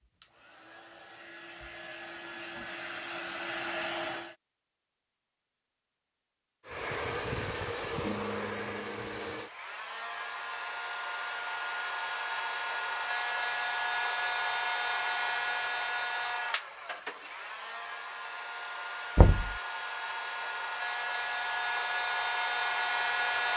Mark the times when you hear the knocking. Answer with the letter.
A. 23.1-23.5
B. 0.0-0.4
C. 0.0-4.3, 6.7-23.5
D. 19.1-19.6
D.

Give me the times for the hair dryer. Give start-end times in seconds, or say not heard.
0.0-4.3, 6.7-23.5.